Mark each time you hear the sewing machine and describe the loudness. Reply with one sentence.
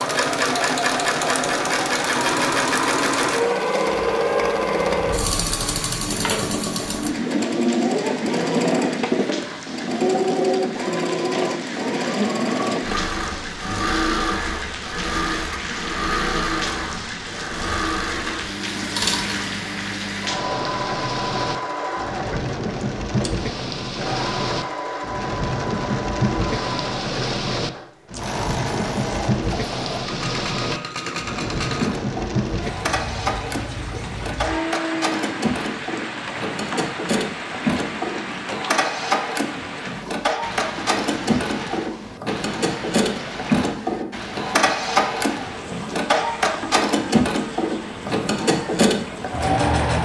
The sewing machine can be heard from 0.0 to 50.0 s, getting quieter then louder.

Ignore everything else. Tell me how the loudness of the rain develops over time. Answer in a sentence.
The volume of the rain goes up, then down.